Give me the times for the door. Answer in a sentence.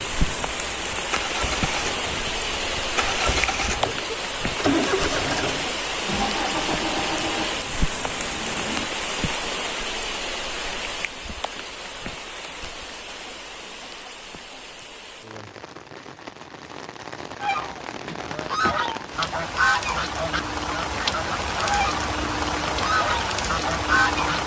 You can hear the door from 17.9 to 18.9 s.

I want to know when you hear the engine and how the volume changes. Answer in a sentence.
The engine can be heard from 0.0 to 8.9 s, getting louder then quieter.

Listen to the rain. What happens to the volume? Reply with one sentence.
The volume of the rain goes down, then up.